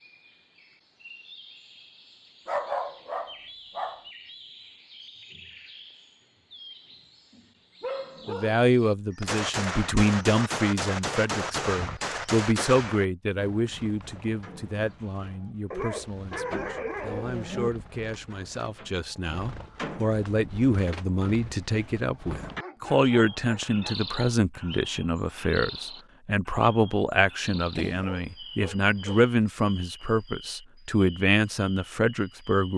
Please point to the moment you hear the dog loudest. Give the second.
3 s.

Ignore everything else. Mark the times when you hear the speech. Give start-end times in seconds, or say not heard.
8.2-32.7.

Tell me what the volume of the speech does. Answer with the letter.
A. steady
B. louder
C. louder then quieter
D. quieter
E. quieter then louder
E.